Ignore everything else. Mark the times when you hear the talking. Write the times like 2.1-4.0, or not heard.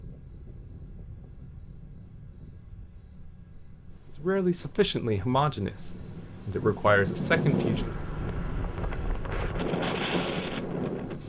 4.2-8.0.